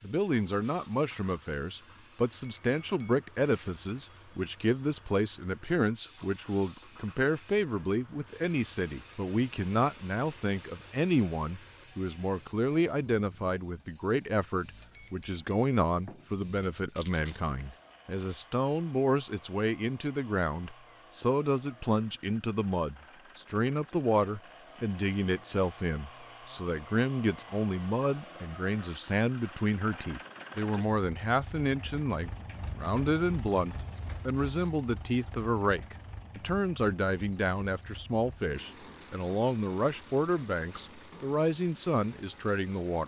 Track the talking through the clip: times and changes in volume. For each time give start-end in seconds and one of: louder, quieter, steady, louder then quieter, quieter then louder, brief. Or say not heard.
0.0-43.0 steady.